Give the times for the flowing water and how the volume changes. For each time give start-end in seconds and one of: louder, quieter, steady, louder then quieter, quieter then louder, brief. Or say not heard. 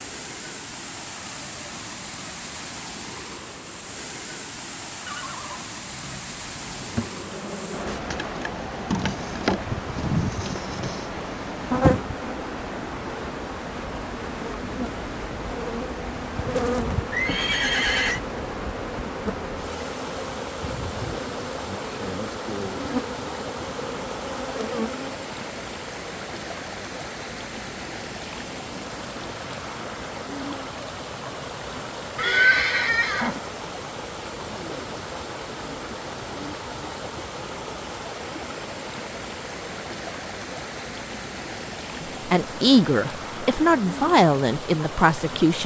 0.0-45.6 steady.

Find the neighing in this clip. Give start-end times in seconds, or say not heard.
5.0-7.0, 17.1-18.2, 32.1-33.4.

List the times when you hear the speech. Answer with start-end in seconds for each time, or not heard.
42.0-45.6.